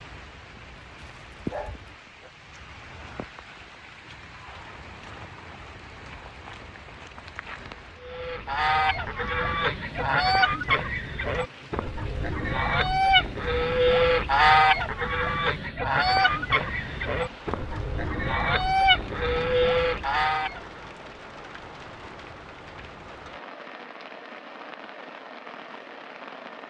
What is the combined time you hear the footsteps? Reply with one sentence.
The footsteps can't be heard in this clip.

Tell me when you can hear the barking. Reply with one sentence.
The barking can be heard from 0.9 to 2.3 s.